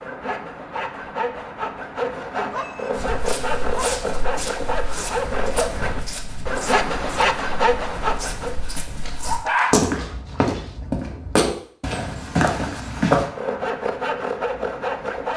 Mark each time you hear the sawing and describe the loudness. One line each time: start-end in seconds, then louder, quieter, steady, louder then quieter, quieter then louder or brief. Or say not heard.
0.0-8.7 louder
13.2-15.3 brief.